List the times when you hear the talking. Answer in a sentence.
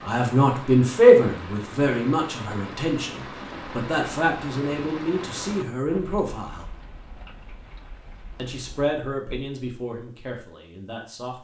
You can hear the talking from 0.1 to 6.7 s and from 8.3 to 11.4 s.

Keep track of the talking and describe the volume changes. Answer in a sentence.
The loudness of the talking goes down.